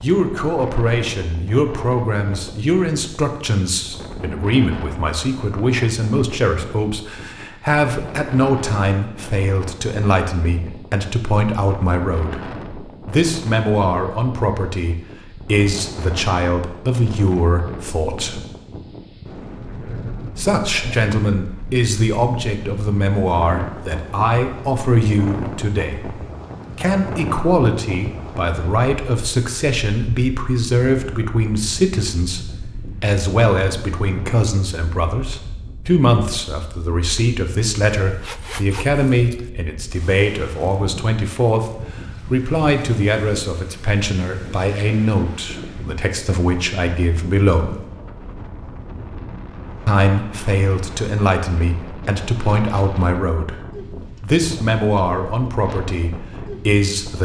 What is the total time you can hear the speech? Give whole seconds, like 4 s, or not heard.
53 s.